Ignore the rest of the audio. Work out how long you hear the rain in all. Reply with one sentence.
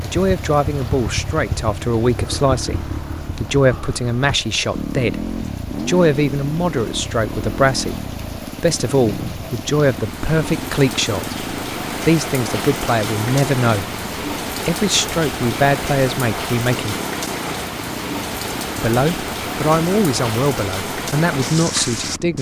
You can hear the rain for 22 seconds altogether.